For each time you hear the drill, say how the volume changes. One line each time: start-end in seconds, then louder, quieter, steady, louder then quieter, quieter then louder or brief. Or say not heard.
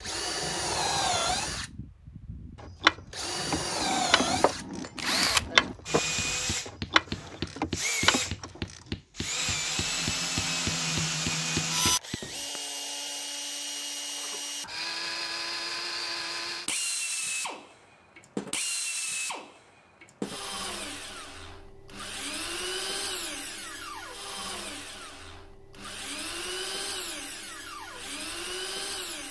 0.0-29.2 quieter.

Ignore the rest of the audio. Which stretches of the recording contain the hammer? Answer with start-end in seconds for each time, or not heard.
3.8-12.6.